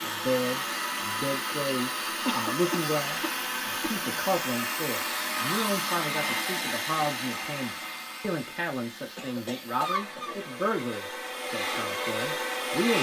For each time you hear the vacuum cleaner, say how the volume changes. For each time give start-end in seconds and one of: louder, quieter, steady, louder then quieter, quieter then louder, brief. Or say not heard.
0.0-12.9 quieter then louder.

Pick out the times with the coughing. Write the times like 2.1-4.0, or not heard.
2.2-4.0, 9.2-10.5.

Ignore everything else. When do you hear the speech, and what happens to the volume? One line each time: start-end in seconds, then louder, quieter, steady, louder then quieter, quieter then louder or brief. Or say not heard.
0.0-12.9 steady.